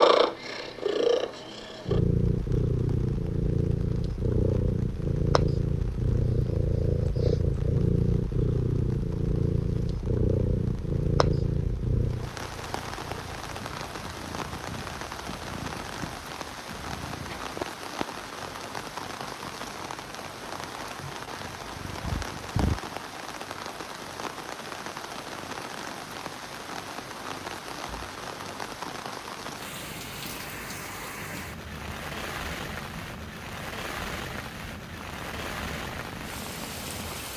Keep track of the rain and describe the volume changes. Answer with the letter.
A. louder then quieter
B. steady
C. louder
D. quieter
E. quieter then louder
C.